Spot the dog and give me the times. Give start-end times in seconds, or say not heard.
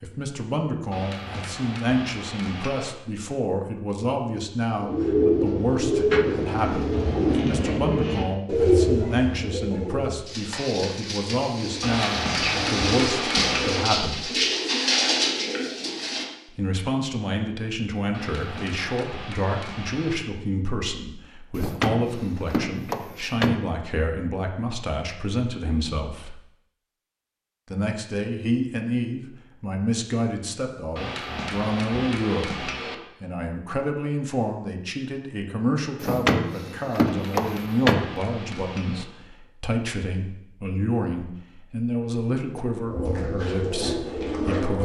not heard.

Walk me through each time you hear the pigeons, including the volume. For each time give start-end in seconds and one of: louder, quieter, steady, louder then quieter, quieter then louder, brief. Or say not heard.
4.8-16.2 quieter then louder
42.8-44.8 brief.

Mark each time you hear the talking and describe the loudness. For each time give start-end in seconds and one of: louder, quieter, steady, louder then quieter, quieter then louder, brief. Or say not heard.
0.0-14.3 steady
16.4-26.4 steady
27.7-44.8 steady.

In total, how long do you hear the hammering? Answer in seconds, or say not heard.
10 s.